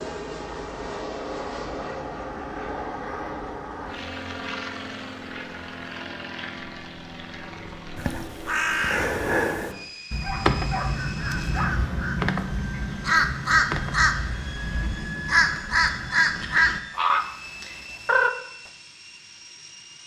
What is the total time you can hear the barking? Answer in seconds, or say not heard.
2 s.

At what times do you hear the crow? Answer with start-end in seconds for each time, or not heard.
7.3-18.3.